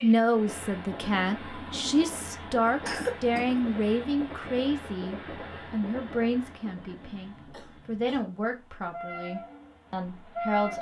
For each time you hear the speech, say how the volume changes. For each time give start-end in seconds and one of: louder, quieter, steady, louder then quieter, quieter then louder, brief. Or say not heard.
0.0-10.7 quieter.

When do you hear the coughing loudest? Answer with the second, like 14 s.
3 s.